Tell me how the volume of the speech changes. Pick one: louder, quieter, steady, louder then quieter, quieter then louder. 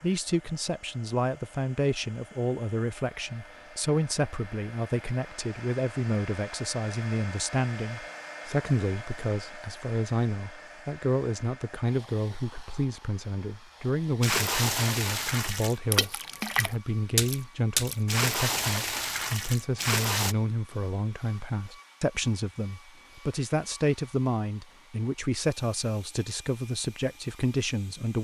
steady.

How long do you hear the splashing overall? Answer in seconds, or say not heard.
6 s.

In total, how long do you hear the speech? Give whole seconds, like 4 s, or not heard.
28 s.